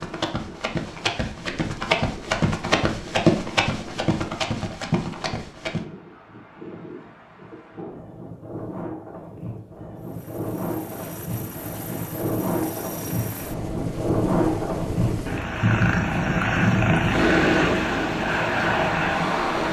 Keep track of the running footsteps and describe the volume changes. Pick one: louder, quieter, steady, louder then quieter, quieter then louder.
louder then quieter.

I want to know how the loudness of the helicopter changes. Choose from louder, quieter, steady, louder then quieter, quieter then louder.
louder.